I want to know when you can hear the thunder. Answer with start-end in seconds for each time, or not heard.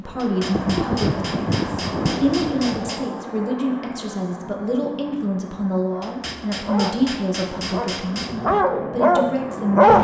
0.5-3.1.